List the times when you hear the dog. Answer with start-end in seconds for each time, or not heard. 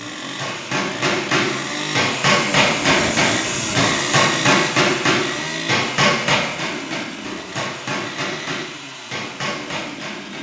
not heard.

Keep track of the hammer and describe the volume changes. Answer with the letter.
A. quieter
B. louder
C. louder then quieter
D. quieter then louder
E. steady
A.